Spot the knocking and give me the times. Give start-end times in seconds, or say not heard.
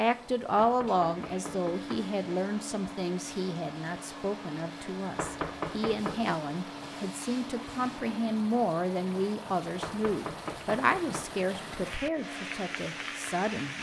0.6-2.1, 5.2-6.3, 9.8-11.3.